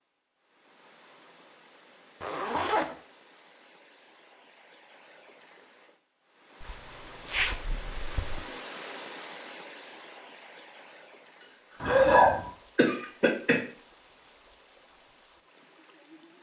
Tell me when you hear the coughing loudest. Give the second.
12 s.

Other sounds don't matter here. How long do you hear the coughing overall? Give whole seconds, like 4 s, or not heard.
2 s.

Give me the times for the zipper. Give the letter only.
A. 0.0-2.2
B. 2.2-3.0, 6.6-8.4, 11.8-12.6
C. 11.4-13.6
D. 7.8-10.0
B.